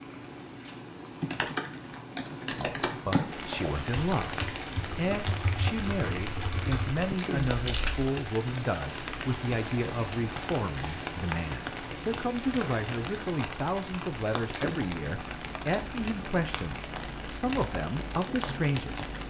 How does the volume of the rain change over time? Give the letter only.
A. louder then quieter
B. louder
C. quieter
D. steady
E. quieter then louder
D.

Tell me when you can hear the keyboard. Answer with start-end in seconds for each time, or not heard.
1.2-8.1.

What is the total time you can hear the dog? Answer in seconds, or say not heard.
not heard.